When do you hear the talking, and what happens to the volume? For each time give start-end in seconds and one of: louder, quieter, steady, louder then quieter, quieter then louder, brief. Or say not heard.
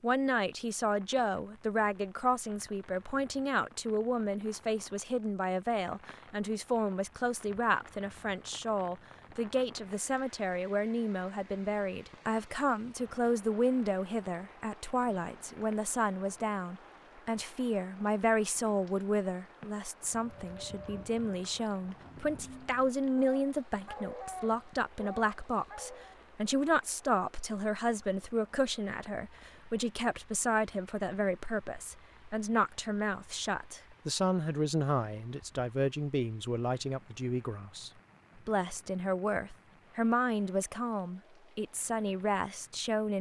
0.0-43.1 steady.